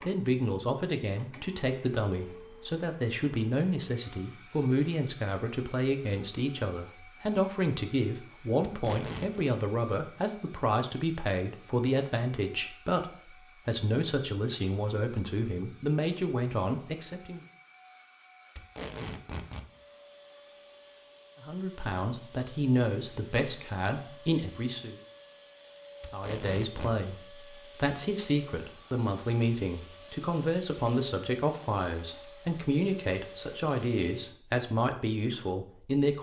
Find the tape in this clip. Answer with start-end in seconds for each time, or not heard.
8.7-9.4, 18.6-19.7, 26.0-26.9.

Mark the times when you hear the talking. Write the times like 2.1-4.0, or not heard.
0.0-17.4, 21.4-24.9, 26.1-36.1.